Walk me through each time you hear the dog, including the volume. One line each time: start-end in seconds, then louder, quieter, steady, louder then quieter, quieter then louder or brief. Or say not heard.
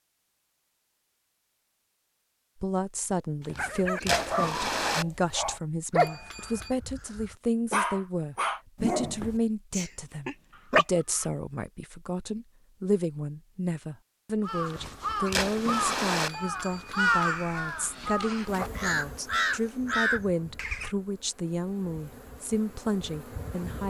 3.5-11.2 louder.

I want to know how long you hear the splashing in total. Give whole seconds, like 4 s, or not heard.
3 s.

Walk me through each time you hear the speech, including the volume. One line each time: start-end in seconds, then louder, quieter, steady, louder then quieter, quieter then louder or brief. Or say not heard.
2.6-23.8 steady.